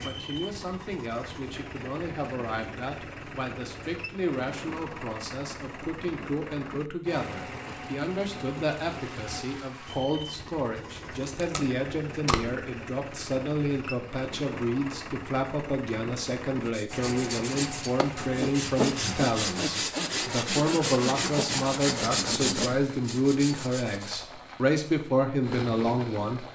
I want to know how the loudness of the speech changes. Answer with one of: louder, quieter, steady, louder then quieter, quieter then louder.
louder.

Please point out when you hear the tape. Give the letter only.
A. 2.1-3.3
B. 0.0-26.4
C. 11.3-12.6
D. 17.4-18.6
C.